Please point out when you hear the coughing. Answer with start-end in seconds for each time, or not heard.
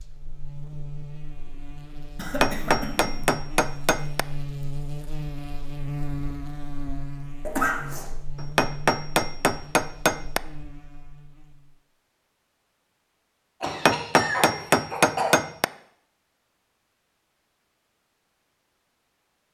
2.1-3.2, 7.5-8.1, 13.6-15.3.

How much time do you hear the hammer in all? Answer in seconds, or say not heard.
6 s.